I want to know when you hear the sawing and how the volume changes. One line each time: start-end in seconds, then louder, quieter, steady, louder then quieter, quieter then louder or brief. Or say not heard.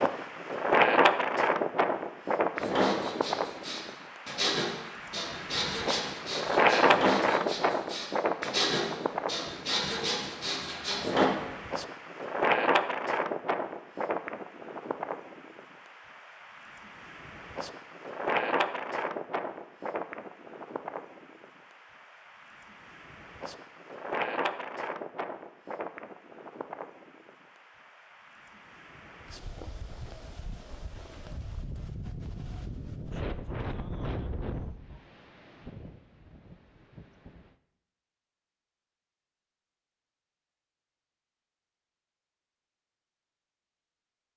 2.5-11.2 steady.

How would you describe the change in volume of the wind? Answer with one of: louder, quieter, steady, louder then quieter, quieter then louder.
quieter.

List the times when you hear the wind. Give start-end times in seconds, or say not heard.
0.0-37.5.